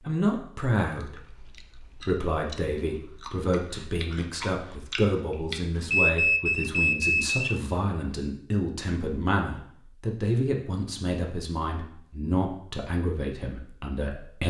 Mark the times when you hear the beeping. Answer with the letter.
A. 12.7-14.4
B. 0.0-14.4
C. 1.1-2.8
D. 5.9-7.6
D.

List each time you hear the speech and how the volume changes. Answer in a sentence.
You can hear the speech from 0.0 to 14.4 s, at a steady volume.